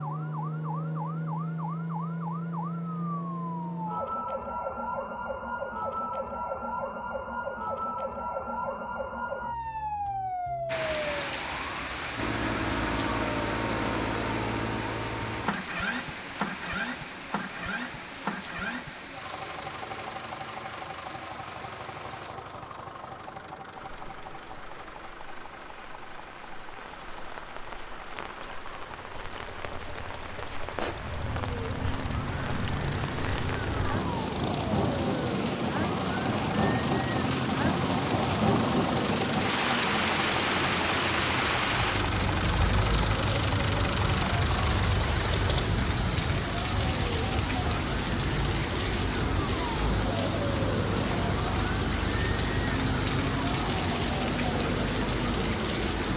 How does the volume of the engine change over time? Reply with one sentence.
The volume of the engine goes down, then up.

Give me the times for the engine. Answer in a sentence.
You can hear the engine from 12.2 to 45.7 s.